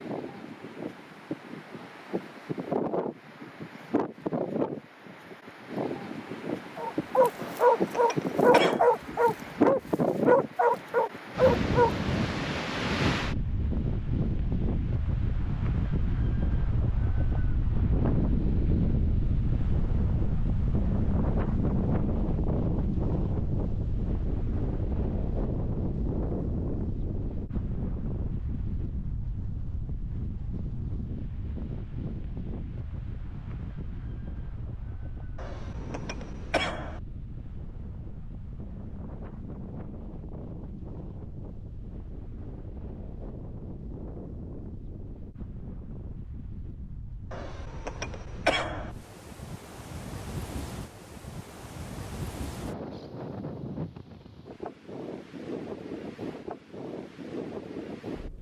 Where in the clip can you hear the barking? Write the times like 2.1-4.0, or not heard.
6.8-11.9.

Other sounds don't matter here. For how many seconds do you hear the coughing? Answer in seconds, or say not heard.
5 s.